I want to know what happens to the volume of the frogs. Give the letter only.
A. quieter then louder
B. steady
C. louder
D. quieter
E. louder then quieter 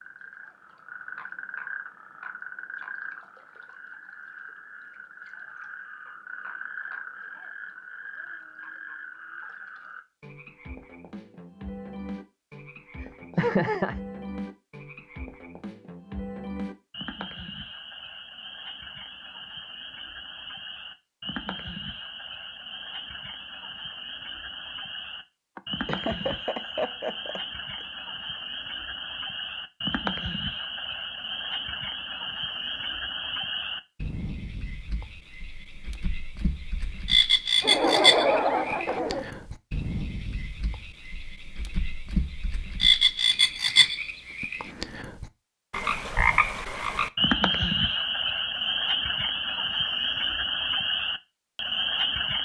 C.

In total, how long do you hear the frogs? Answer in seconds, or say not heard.
52 s.